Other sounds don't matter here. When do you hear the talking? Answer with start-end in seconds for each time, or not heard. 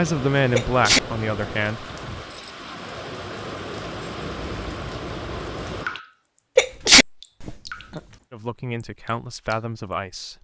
0.0-1.9, 8.3-10.4.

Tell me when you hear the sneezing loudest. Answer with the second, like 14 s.
7 s.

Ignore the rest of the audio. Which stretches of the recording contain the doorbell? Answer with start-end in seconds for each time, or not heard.
not heard.